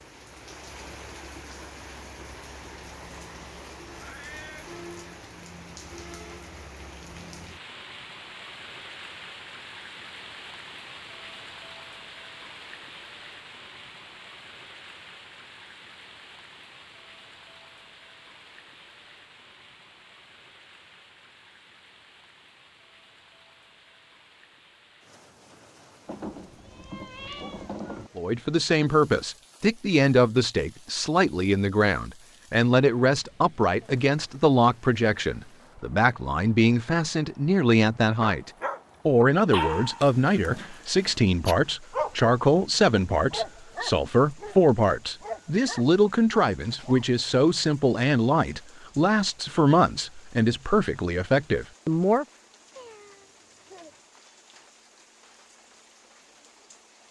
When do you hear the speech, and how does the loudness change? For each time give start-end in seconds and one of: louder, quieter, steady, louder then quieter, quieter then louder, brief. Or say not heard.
28.1-52.2 steady.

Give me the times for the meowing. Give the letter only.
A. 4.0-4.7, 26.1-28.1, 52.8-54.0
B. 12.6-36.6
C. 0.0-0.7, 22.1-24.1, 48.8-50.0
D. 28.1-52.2
A.